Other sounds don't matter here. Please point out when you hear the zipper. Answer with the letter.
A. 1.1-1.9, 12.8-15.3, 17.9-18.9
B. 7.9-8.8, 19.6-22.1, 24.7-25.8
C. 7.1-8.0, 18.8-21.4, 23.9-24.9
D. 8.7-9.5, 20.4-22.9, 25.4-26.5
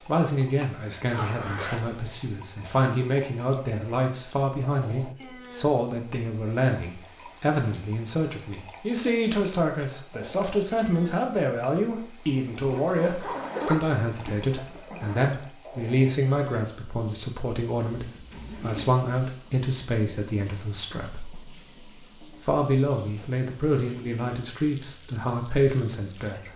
A.